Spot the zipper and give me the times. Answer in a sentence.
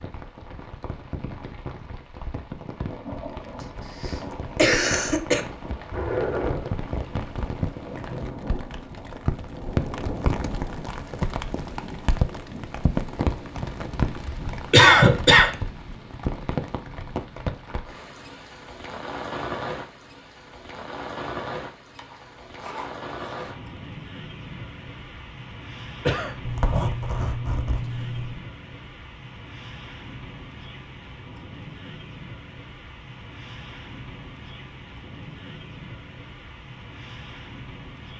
The zipper can be heard from 5.9 to 6.7 s, from 21.9 to 23.8 s and from 26.4 to 28.4 s.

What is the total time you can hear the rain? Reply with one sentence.
The rain can be heard for 38 seconds in total.